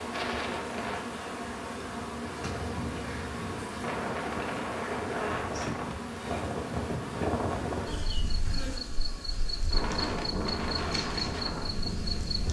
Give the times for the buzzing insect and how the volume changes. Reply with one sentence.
You can hear the buzzing insect from 0.0 to 12.4 s, at a steady volume.